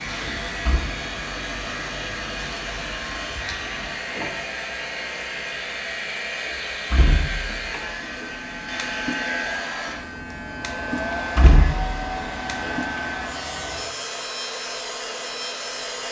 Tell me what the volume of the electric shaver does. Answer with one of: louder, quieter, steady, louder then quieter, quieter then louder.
steady.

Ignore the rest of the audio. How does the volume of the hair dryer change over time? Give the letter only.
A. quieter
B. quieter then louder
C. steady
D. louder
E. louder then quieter
C.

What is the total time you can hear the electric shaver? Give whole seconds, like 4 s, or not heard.
16 s.